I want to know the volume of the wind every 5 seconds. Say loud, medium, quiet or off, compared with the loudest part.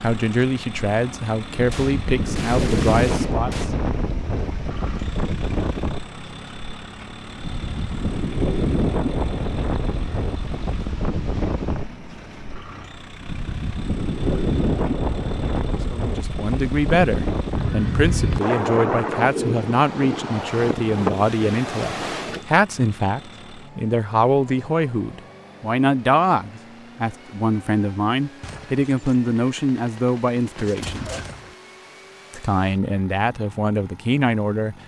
loud, loud, loud, loud, loud, off, off.